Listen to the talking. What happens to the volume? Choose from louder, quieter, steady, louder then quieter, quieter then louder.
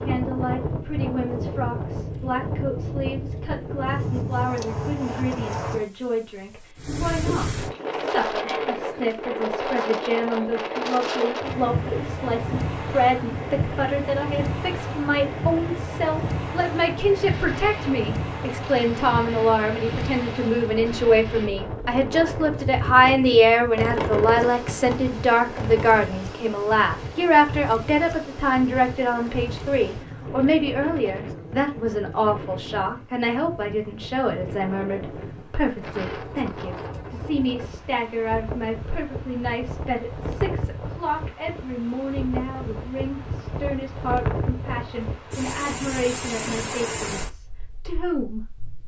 louder then quieter.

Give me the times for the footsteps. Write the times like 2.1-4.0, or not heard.
not heard.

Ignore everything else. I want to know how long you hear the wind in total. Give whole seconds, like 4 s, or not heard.
49 s.